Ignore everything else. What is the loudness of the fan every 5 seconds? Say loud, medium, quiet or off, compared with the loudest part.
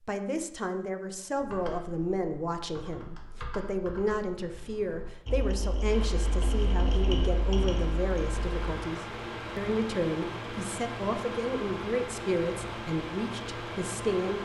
off, loud, loud.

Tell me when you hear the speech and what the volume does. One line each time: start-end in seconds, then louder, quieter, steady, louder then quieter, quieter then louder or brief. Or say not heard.
0.0-14.3 steady.